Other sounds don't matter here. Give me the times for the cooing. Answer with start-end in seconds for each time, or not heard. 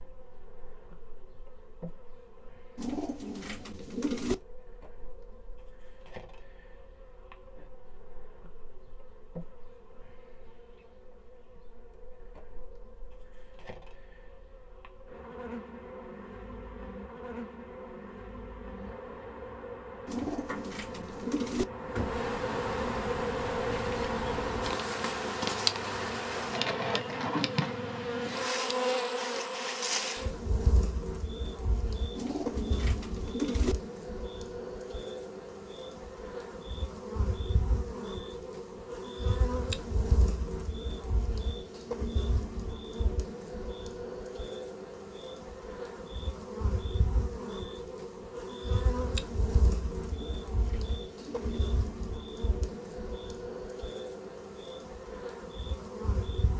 2.8-4.3, 20.1-21.6, 32.1-33.8, 50.0-51.6.